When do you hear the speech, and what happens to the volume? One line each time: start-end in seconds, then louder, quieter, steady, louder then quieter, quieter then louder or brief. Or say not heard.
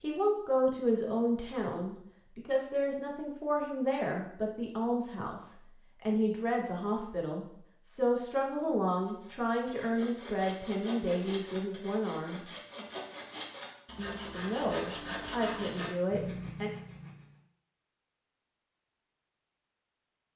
0.0-12.4 steady
13.9-16.7 brief.